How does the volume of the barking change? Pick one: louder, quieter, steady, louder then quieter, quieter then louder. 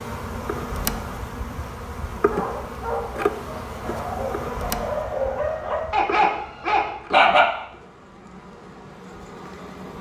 louder.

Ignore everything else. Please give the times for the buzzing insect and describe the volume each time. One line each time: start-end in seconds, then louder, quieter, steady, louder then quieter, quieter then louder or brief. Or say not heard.
0.0-9.9 quieter.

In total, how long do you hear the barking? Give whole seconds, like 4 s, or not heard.
5 s.